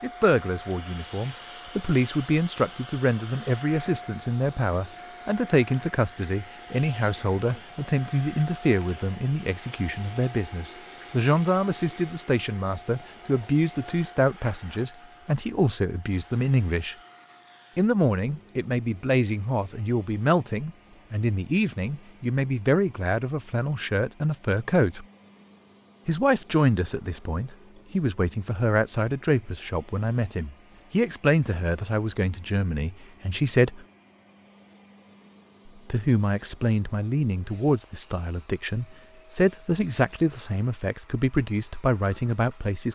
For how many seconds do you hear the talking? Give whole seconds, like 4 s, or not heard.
39 s.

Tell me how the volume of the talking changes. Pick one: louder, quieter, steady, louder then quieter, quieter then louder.
steady.